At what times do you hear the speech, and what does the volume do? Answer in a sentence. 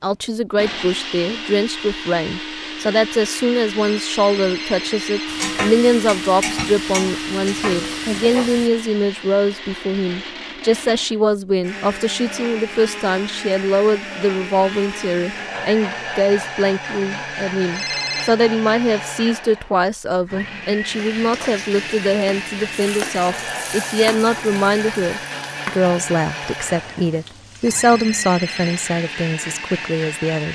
The speech can be heard from 0.0 to 30.5 s, at a steady volume.